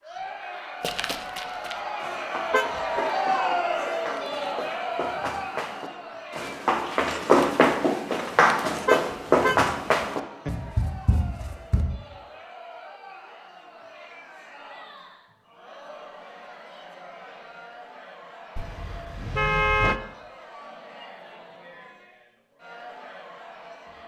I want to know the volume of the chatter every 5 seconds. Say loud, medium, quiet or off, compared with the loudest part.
loud, medium, quiet, quiet, quiet.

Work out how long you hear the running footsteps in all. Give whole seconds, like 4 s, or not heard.
11 s.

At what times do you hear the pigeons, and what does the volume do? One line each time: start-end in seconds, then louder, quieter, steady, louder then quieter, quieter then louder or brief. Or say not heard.
not heard.